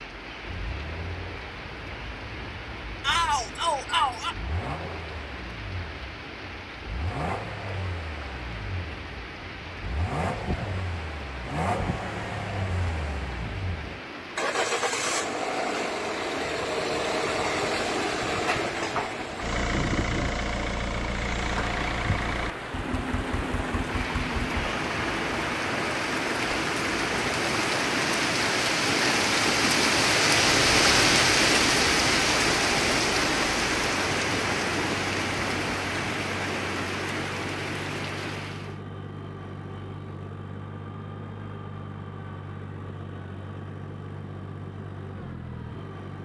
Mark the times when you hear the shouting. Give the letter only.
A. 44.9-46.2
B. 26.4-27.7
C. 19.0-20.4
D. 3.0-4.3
D.